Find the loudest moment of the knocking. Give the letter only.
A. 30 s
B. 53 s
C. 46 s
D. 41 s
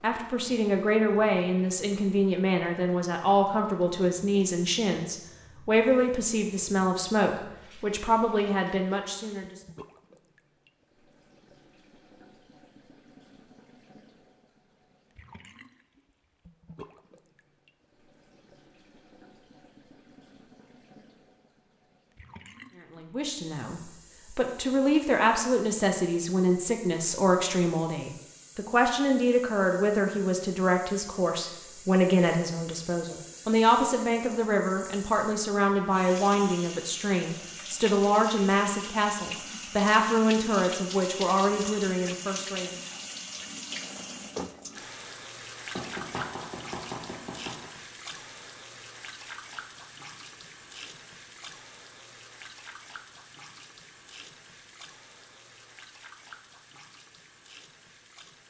C.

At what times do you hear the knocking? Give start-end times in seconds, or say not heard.
45.7-47.7.